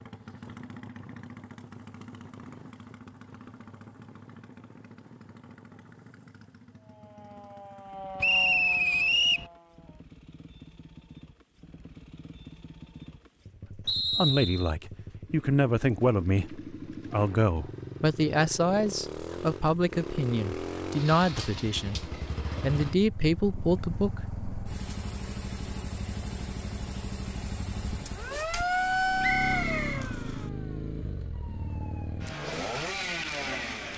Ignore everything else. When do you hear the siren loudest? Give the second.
29 s.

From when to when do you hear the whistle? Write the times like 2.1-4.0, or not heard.
8.2-9.5, 13.8-14.7, 29.2-30.1.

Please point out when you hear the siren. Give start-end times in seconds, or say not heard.
6.8-10.0, 28.1-33.9.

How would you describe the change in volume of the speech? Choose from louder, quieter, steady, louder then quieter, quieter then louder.
steady.